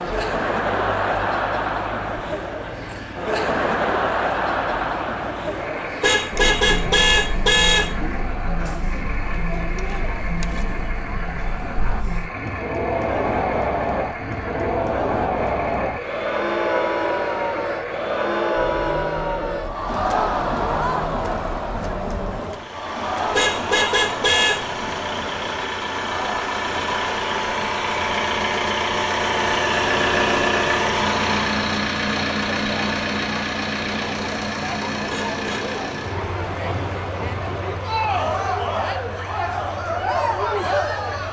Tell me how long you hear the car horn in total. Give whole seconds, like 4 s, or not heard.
4 s.